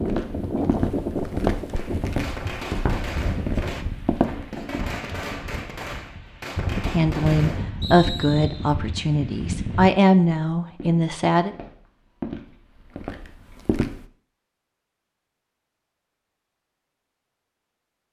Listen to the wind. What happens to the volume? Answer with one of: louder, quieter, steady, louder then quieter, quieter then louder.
quieter then louder.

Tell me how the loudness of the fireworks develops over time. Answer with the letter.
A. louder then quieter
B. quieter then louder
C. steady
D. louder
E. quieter
C.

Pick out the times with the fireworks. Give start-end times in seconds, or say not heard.
1.7-7.8.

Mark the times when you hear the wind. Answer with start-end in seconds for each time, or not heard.
0.0-9.9.